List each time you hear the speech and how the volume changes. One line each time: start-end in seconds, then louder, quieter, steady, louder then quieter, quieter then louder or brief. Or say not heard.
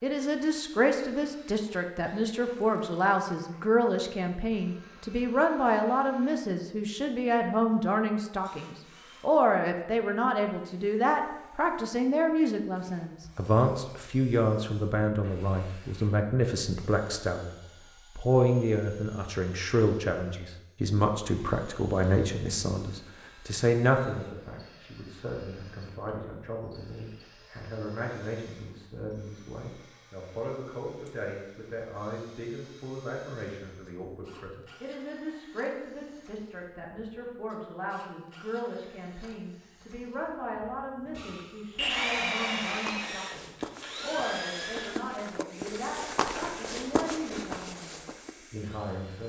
0.0-49.2 quieter.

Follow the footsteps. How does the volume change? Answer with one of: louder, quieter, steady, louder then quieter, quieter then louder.
louder.